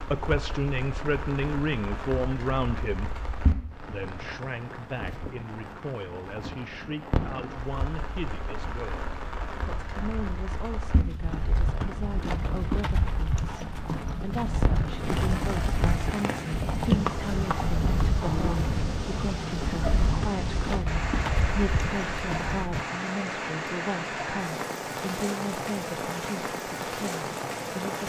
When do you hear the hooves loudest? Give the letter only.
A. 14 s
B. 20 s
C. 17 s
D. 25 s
C.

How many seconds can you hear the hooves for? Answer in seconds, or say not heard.
12 s.